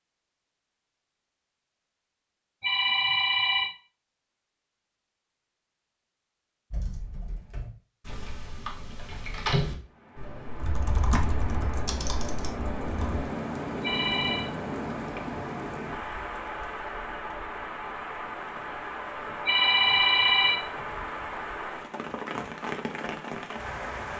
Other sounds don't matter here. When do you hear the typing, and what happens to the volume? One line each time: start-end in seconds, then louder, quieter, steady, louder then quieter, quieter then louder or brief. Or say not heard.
6.7-13.3 louder then quieter.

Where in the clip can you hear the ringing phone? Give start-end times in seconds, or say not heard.
2.6-3.8, 13.8-14.5, 19.4-21.1.